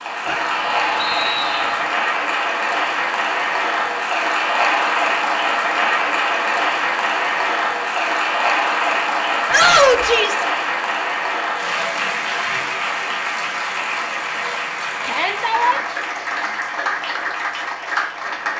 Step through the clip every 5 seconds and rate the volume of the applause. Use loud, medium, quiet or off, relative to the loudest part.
loud, loud, loud, medium.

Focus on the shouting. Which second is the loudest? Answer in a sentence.
The volume of the shouting peaks at 10 seconds.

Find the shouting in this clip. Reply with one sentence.
You can hear the shouting from 0.2 to 1.8 s, from 9.5 to 10.4 s and from 15.1 to 15.8 s.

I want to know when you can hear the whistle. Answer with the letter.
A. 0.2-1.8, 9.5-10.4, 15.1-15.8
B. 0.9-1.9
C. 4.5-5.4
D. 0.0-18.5
B.